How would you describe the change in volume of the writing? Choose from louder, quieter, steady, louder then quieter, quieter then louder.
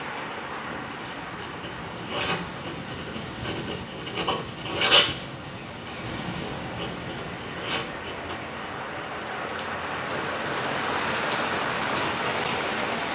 louder then quieter.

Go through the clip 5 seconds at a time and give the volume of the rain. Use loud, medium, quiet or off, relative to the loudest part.
medium, medium, loud.